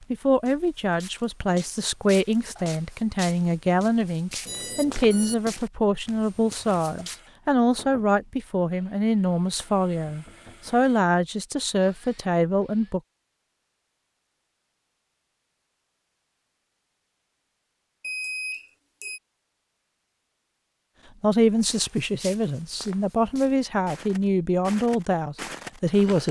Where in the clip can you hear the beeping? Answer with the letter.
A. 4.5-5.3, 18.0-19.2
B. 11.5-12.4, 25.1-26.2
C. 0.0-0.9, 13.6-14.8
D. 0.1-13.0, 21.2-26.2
A.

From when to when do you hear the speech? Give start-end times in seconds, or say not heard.
0.1-13.0, 21.2-26.2.